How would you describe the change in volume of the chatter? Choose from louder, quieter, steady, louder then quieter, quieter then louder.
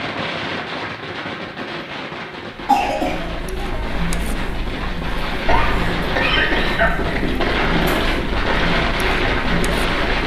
steady.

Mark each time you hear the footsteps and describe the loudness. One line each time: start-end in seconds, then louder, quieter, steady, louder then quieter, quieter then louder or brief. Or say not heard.
not heard.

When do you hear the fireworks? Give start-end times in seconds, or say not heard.
0.0-10.2.